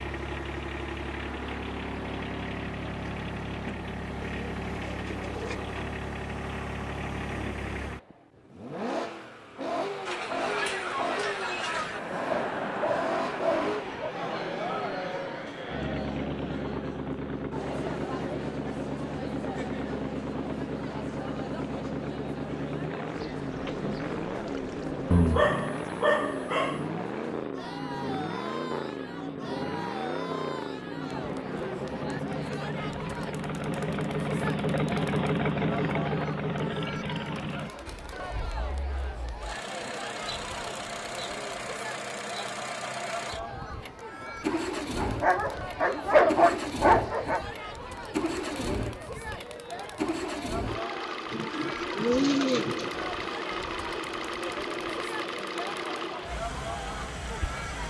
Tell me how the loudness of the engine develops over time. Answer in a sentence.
The loudness of the engine stays about the same.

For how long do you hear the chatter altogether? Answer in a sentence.
The chatter can be heard for 48 seconds in total.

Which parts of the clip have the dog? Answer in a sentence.
You can hear the dog from 12.3 to 14.2 s, from 25.1 to 26.9 s and from 45.0 to 47.5 s.